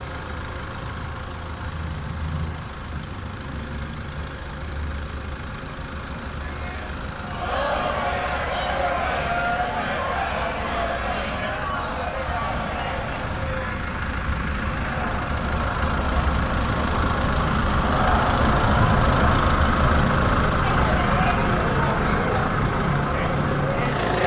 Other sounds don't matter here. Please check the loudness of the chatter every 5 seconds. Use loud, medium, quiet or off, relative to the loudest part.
off, loud, loud, loud, loud.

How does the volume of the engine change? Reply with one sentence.
The loudness of the engine goes up.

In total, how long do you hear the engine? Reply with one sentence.
The engine can be heard for 24 seconds in total.